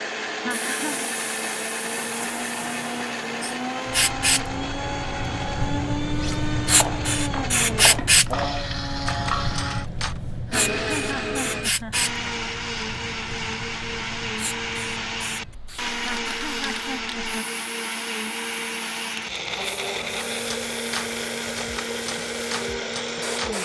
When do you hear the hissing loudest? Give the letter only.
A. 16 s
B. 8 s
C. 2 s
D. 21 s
B.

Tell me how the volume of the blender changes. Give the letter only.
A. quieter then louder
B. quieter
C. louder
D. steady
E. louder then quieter
D.